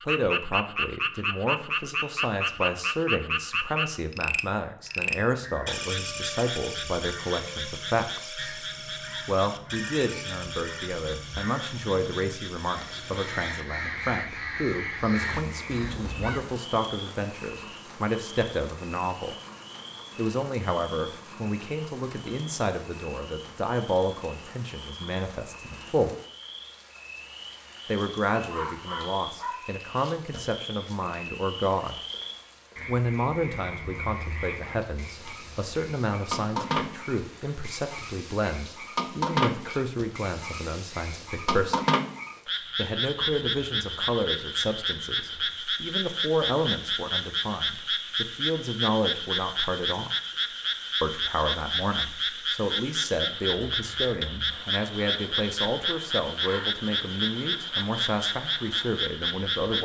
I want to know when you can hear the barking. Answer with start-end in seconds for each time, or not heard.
27.9-29.6.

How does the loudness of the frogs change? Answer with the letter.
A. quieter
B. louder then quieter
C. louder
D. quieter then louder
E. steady
D.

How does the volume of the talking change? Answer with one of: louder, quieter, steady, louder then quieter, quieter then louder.
steady.